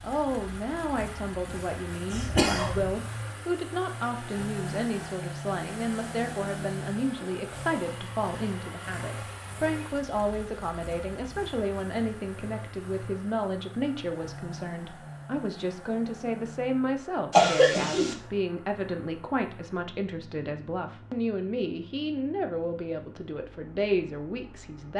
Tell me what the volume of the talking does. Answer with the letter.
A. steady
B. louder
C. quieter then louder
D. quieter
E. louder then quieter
A.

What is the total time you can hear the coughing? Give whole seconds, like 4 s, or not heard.
2 s.